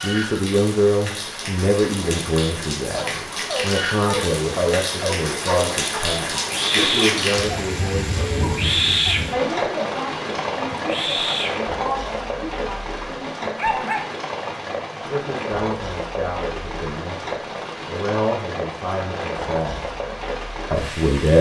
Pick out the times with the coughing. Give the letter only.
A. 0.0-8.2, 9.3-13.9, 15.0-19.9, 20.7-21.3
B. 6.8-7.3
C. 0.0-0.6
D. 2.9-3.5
B.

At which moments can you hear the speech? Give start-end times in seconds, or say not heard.
0.0-8.2, 9.3-13.9, 15.0-19.9, 20.7-21.3.